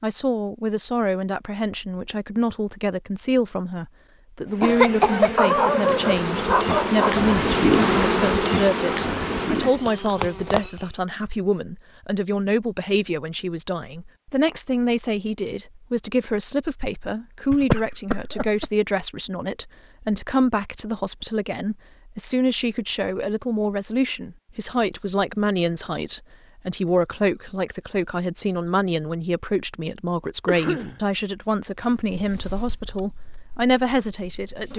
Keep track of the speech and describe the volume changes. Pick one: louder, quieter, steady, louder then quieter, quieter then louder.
steady.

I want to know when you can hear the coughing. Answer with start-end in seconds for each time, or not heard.
4.6-5.3, 17.5-18.7, 30.4-31.0.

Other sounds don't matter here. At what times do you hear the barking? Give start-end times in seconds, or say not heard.
5.3-7.2.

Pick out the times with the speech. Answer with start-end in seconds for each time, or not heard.
0.0-34.7.